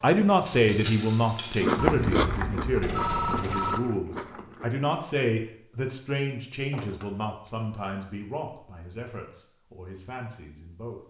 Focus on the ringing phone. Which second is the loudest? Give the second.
3 s.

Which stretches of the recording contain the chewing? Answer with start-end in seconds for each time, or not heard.
1.5-4.7.